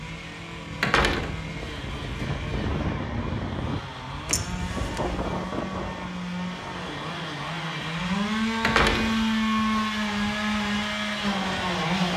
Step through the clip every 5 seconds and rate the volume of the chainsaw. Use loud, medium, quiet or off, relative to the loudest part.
medium, loud, loud.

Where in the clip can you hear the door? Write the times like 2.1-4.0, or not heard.
0.8-2.1, 4.2-5.7, 8.6-10.1.